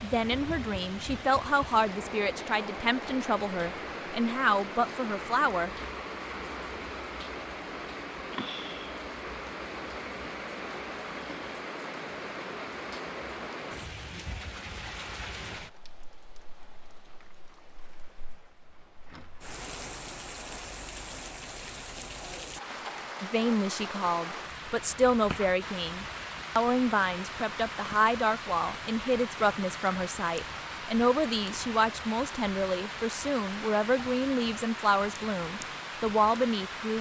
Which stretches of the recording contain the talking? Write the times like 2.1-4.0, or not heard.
0.0-5.7, 23.2-36.9.